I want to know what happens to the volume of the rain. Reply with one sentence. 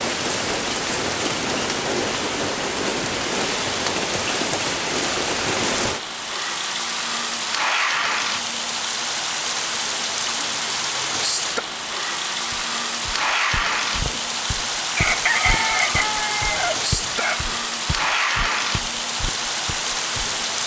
The volume of the rain stays about the same.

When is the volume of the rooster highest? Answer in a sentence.
The loudest moment of the rooster is at 15 seconds.